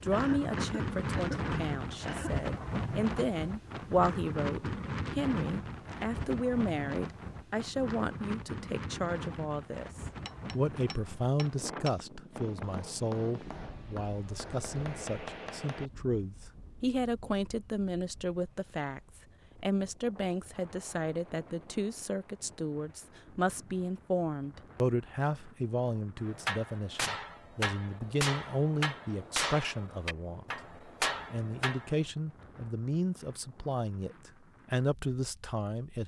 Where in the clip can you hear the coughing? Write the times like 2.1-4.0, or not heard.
0.1-2.5.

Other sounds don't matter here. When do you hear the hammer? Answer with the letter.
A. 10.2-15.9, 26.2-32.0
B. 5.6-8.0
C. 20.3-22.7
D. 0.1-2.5
A.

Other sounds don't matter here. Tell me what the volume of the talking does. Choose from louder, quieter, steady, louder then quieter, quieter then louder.
steady.